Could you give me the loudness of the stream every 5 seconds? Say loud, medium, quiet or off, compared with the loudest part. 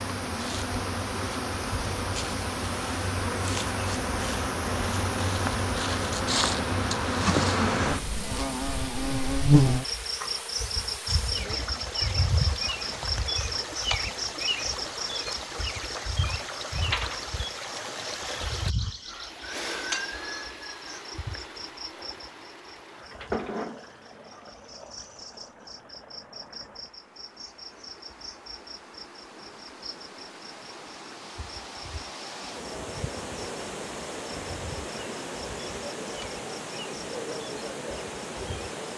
loud, loud, loud, loud, medium, quiet, loud, loud.